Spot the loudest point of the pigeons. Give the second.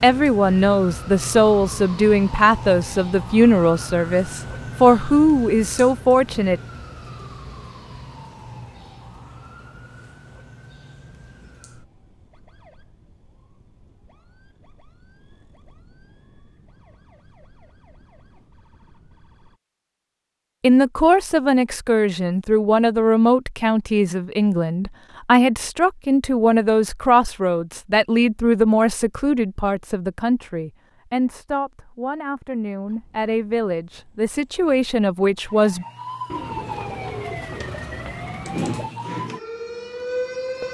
37 s.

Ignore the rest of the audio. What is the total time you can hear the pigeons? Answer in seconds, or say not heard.
3 s.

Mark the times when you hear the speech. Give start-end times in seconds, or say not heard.
0.0-6.6, 20.6-35.9.